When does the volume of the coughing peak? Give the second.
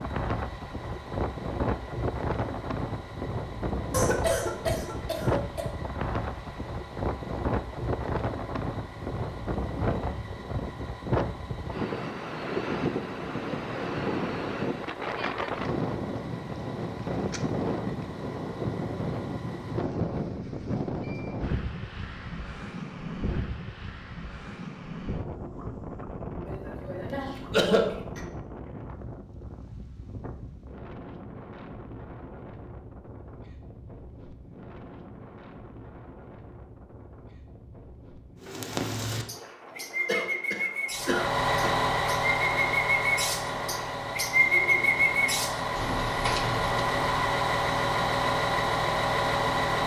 28 s.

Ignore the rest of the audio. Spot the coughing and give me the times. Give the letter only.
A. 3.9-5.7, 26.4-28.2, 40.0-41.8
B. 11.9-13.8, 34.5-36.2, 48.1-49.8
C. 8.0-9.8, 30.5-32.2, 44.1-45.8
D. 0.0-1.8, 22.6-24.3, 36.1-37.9
A.